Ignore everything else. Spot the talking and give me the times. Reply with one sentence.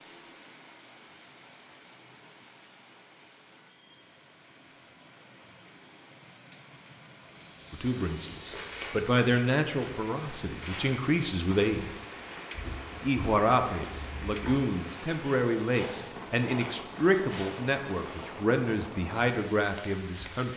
You can hear the talking from 7.7 to 11.9 s and from 13.0 to 20.5 s.